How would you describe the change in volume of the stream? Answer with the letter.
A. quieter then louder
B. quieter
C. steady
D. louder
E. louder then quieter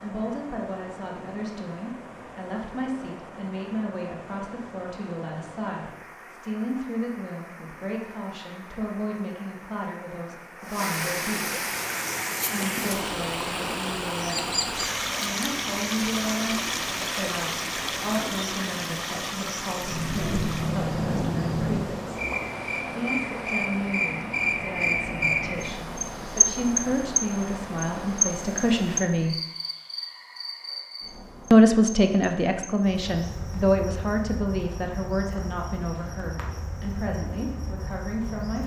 E.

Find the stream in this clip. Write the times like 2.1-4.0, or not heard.
0.0-29.1.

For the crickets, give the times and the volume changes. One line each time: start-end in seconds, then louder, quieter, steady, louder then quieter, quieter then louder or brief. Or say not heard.
11.7-38.6 louder then quieter.